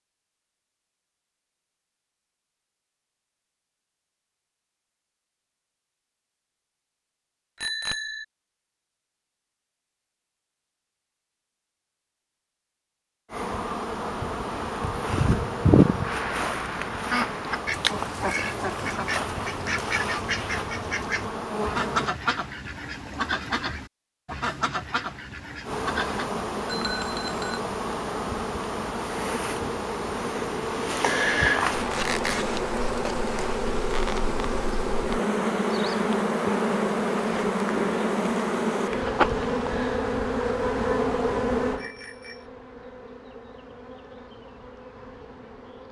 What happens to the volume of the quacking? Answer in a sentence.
The volume of the quacking stays about the same.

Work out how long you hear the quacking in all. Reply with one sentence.
The quacking can be heard for 10 seconds in total.